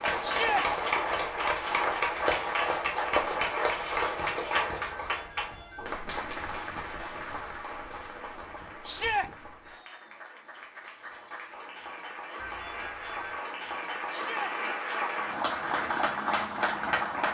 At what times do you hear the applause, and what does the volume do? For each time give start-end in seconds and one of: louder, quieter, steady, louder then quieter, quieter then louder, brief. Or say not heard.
0.0-17.2 quieter then louder.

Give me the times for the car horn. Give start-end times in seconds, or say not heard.
5.0-6.0, 12.3-13.4.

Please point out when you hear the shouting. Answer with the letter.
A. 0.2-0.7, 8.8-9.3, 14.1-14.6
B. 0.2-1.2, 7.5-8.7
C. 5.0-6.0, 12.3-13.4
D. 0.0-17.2
A.